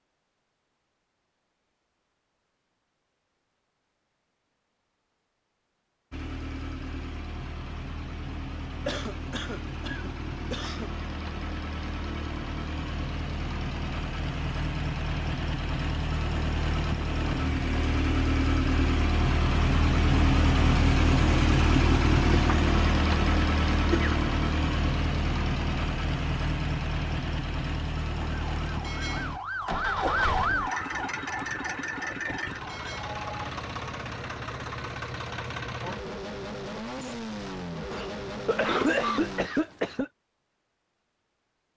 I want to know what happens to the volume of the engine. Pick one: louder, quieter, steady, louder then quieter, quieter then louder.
louder then quieter.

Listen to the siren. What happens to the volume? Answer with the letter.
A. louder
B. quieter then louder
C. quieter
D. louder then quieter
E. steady
D.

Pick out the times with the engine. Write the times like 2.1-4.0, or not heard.
6.1-39.5.